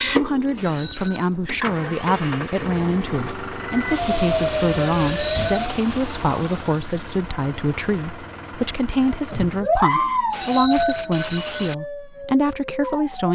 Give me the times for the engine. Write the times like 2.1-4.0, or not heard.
0.0-9.7.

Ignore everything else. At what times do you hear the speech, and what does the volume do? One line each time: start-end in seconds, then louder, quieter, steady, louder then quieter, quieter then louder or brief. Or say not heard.
0.1-13.2 steady.